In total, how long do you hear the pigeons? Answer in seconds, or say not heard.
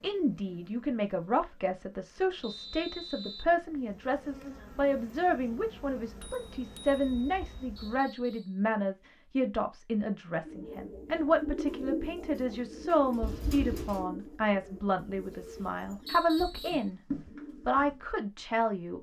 8 s.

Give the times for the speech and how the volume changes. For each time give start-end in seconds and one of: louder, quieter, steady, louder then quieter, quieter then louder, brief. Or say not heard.
0.0-18.9 steady.